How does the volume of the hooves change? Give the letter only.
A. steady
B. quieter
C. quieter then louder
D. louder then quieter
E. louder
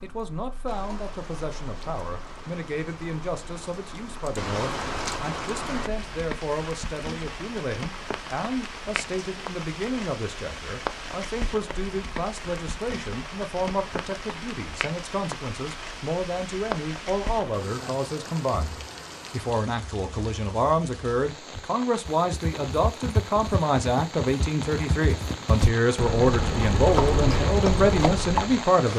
E.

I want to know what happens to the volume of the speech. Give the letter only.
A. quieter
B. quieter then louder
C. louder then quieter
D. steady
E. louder
E.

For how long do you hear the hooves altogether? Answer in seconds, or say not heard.
7 s.